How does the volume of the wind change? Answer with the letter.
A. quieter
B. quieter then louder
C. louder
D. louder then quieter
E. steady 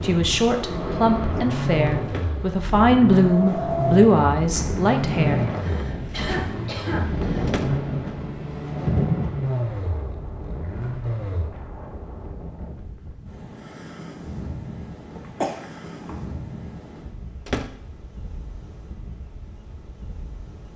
A.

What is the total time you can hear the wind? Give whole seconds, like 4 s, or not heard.
21 s.